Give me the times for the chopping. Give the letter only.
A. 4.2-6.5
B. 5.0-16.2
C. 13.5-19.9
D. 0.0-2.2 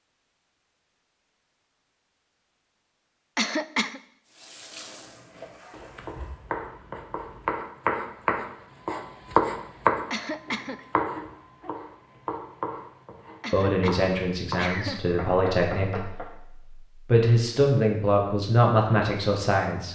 B.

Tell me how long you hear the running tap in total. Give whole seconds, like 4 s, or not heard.
2 s.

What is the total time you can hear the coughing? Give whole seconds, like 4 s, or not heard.
3 s.